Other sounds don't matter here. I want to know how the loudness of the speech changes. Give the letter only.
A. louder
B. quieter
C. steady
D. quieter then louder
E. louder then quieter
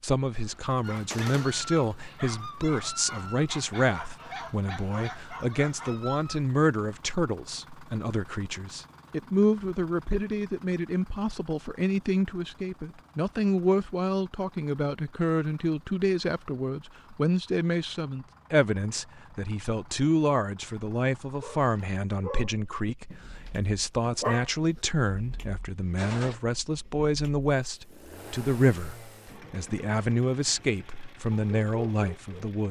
C.